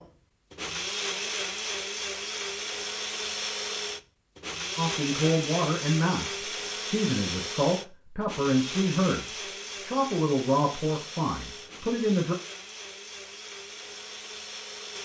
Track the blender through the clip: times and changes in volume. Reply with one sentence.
The blender can be heard from 0.0 to 15.0 s, getting quieter.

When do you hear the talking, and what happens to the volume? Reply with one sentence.
The talking can be heard from 4.8 to 12.3 s, at a steady volume.